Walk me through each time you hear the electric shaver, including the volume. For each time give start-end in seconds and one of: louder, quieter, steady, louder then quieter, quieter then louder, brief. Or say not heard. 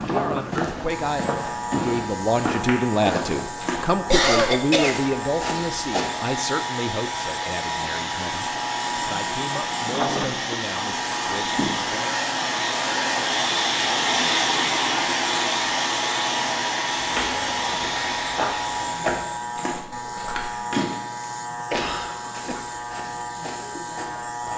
0.0-24.5 steady.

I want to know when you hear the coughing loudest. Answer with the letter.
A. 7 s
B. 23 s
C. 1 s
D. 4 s
D.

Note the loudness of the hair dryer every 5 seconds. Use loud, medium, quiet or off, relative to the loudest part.
off, medium, loud, loud, off.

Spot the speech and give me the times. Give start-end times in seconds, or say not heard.
0.1-12.2.